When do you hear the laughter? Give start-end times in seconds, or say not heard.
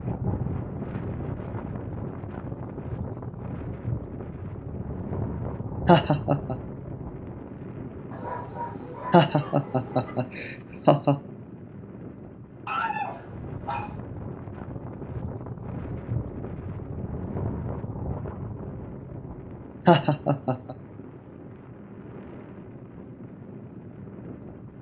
5.8-6.5, 9.1-11.2, 19.9-20.8.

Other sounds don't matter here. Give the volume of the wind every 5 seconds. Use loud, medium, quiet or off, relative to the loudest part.
loud, loud, medium, loud, medium.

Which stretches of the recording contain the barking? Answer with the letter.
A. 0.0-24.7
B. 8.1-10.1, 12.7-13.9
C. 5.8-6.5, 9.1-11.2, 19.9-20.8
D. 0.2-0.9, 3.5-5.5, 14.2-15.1
B.